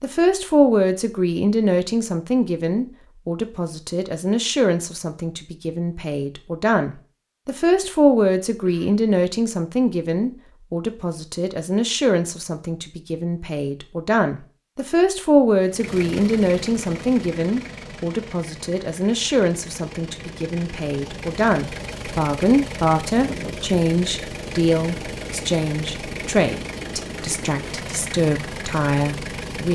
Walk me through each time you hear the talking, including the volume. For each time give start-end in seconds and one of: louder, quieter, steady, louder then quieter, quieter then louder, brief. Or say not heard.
0.0-29.6 steady.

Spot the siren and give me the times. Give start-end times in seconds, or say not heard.
not heard.